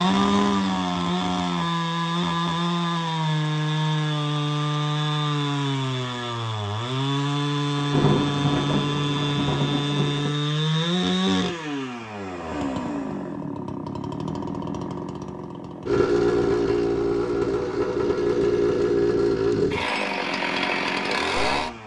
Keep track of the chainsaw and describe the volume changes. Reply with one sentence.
The loudness of the chainsaw stays about the same.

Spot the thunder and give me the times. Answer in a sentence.
The thunder can be heard from 7.8 to 10.3 s.